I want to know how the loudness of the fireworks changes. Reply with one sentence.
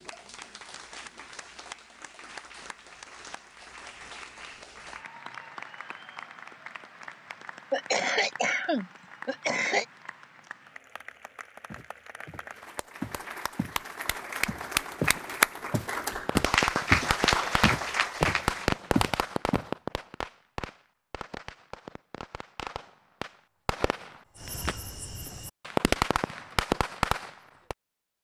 The loudness of the fireworks goes down, then up.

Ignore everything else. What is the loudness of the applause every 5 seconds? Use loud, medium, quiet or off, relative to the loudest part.
quiet, quiet, medium, loud, off, off.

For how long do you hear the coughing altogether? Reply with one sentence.
You can hear the coughing for 2 seconds altogether.